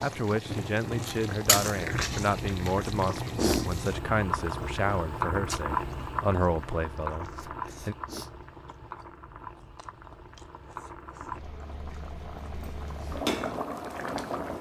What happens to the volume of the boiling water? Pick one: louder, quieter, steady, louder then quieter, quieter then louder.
quieter then louder.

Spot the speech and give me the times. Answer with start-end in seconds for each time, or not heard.
0.0-8.0.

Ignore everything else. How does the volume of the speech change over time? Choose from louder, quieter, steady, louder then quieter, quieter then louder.
steady.